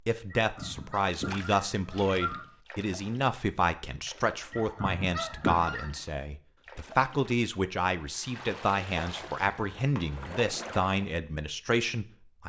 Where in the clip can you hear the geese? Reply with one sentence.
The geese can be heard from 0.3 to 2.5 s, from 4.5 to 6.0 s and from 9.1 to 10.4 s.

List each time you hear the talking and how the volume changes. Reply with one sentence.
You can hear the talking from 0.1 to 12.4 s, at a steady volume.